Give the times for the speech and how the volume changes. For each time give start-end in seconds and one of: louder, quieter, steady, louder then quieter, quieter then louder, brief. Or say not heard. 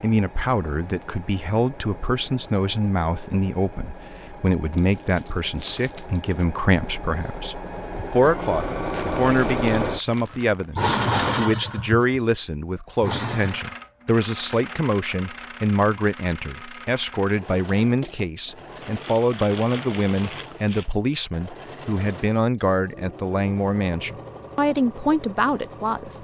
0.0-26.1 steady.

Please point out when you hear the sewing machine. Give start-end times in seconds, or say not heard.
0.0-26.1.